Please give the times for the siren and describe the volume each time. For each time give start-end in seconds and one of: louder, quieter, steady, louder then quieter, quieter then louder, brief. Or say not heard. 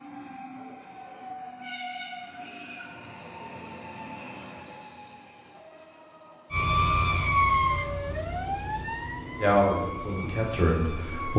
6.5-11.3 quieter.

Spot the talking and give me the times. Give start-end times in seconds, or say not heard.
9.4-11.3.